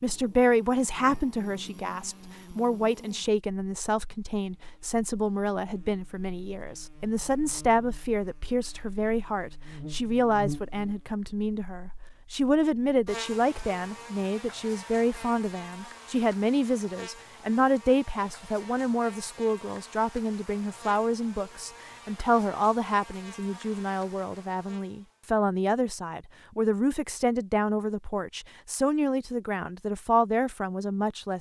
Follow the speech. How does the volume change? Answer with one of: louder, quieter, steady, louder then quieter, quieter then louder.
steady.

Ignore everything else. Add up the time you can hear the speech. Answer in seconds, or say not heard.
31 s.